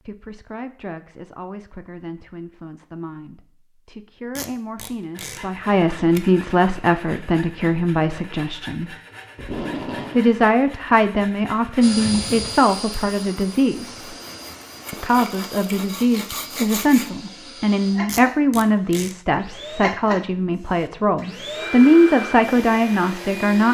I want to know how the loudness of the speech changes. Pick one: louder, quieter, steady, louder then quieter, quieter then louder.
louder.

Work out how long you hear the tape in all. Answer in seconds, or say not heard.
3 s.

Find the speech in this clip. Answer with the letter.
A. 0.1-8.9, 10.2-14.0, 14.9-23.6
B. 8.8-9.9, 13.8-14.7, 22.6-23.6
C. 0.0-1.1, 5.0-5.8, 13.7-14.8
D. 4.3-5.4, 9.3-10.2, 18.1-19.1
A.